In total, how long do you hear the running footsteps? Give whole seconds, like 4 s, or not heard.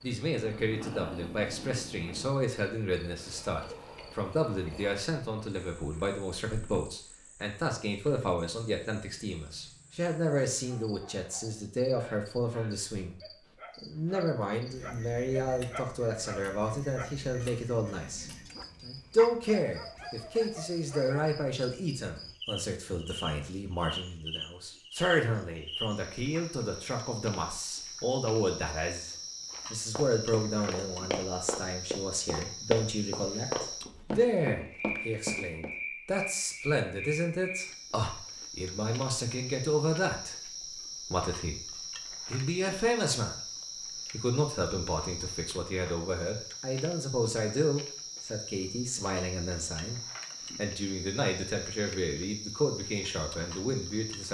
6 s.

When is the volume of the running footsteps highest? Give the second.
33 s.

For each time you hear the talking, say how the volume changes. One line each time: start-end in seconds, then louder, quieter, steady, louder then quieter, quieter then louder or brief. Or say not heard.
0.0-54.2 steady.